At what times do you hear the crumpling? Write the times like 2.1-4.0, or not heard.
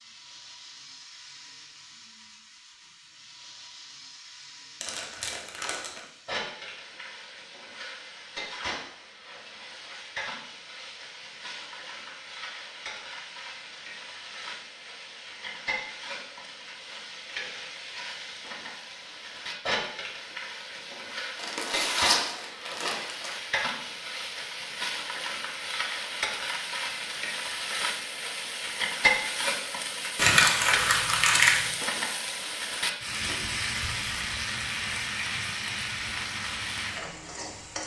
4.8-6.0, 21.4-23.4, 30.1-31.6.